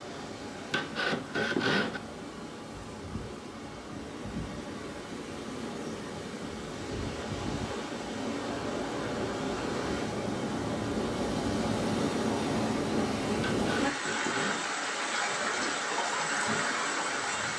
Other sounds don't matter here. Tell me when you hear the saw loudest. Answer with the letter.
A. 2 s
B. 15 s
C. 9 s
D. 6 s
A.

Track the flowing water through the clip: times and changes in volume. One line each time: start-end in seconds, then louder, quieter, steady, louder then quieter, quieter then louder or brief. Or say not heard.
0.0-17.5 louder.